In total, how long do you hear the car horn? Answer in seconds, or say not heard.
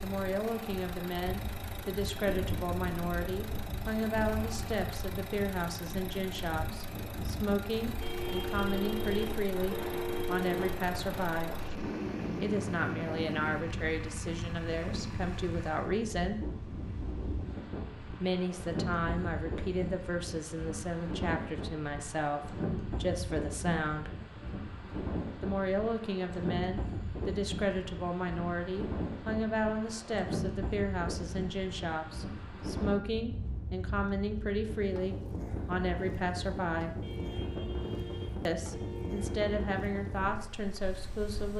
5 s.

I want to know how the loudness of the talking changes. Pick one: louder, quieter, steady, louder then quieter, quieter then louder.
steady.